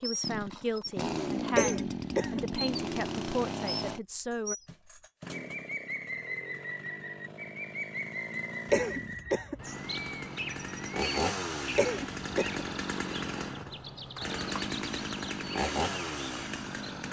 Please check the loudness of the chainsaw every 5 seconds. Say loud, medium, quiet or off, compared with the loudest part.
loud, medium, loud, loud.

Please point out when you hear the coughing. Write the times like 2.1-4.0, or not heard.
1.6-2.5, 8.7-9.7, 11.8-12.7.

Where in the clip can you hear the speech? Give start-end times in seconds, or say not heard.
0.0-4.5.